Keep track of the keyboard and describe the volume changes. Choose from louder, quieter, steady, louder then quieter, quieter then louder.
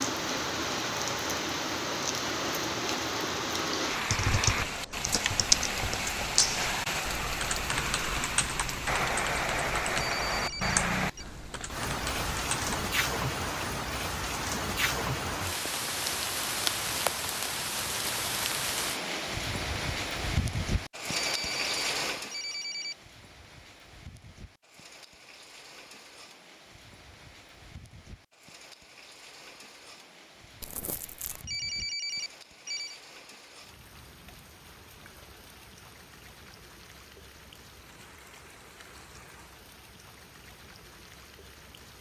quieter.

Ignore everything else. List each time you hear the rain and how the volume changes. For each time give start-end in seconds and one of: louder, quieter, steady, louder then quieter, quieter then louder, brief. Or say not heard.
0.0-41.9 quieter.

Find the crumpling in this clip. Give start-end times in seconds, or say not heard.
30.6-31.4.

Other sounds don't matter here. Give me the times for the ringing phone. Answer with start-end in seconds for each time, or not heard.
10.1-11.2, 21.1-22.9, 31.3-33.0.